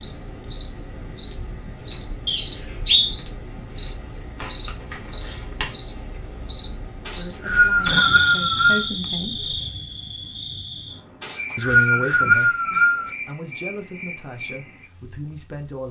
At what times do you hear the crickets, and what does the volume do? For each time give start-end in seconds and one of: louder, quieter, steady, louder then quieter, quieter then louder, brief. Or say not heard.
0.0-15.8 quieter.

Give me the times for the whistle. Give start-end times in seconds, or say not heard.
2.2-3.1, 7.0-8.8, 11.2-13.1.